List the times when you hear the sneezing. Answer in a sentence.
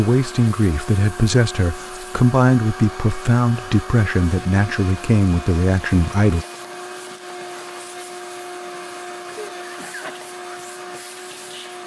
You can hear the sneezing from 9.3 to 10.2 s.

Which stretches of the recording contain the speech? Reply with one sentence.
The speech can be heard from 0.0 to 6.5 s.